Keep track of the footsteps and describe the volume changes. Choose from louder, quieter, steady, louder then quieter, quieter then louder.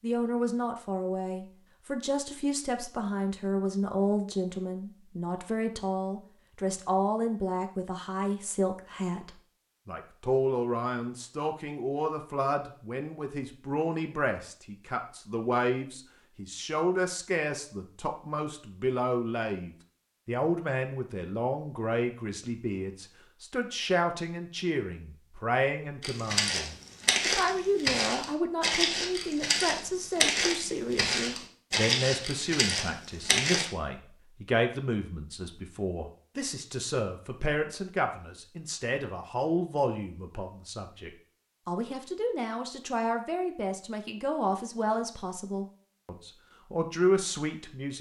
steady.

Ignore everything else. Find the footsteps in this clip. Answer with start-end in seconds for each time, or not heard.
26.0-33.7.